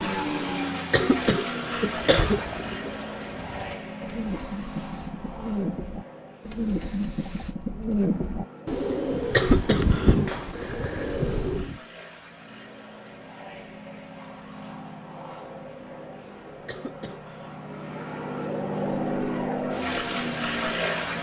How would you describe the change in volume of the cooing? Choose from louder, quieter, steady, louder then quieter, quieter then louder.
louder.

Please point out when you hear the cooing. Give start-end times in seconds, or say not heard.
1.8-11.8.